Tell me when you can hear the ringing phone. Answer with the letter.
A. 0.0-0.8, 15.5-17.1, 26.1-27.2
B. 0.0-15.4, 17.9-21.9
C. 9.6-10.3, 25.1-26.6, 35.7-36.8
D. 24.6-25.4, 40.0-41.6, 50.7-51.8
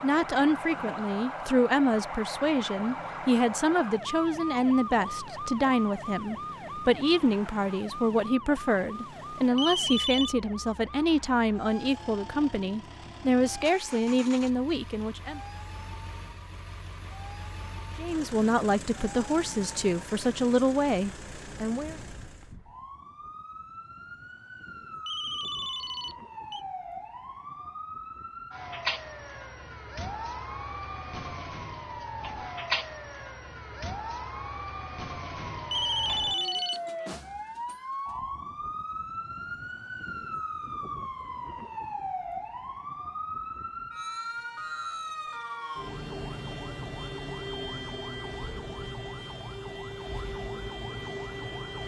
C.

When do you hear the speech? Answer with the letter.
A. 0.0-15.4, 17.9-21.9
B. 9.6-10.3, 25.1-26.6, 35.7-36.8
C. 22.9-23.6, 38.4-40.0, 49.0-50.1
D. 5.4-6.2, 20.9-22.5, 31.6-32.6
A.